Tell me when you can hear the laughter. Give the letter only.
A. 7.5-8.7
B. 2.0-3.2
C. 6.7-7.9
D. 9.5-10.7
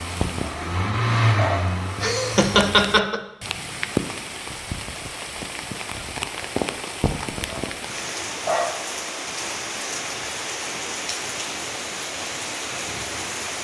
B.